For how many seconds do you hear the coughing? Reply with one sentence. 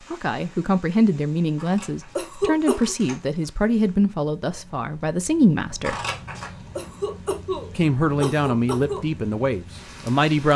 The coughing can be heard for 3 seconds in total.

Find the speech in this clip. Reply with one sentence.
You can hear the speech from 0.1 to 6.0 s and from 7.8 to 10.5 s.